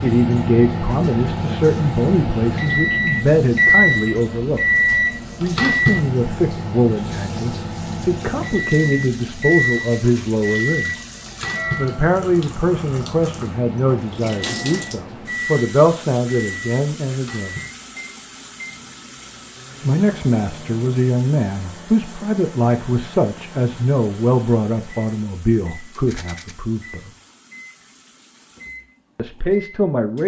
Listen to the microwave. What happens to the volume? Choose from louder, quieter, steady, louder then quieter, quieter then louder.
quieter.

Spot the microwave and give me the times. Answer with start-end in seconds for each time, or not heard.
0.0-30.2.